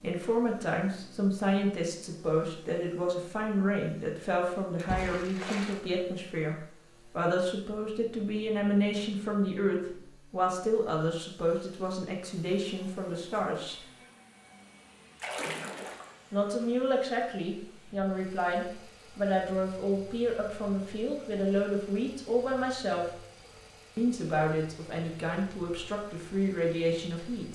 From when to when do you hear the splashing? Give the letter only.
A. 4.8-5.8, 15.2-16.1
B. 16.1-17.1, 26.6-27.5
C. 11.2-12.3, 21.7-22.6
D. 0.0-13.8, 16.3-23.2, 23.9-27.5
A.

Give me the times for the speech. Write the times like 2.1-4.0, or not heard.
0.0-13.8, 16.3-23.2, 23.9-27.5.